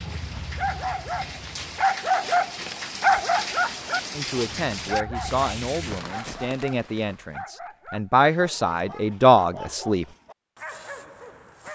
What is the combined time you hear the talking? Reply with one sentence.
You can hear the talking for 6 seconds altogether.